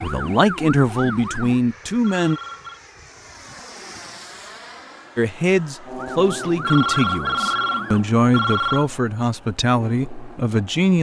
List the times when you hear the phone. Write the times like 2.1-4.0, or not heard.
2.0-2.8, 6.5-8.8.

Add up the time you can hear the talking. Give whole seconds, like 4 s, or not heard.
8 s.